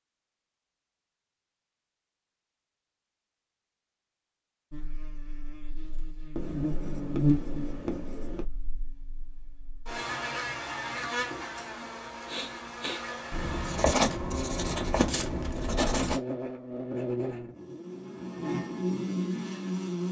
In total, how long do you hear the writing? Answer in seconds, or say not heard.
5 s.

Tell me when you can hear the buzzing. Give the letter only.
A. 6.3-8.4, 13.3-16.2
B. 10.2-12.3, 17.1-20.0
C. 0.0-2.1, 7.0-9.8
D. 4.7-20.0
D.